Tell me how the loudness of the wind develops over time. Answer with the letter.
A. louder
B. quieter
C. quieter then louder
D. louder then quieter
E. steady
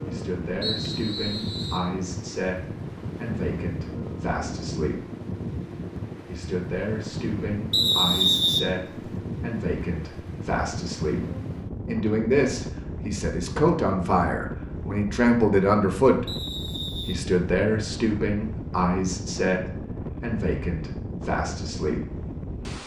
E.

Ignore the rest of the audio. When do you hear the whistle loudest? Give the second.
8 s.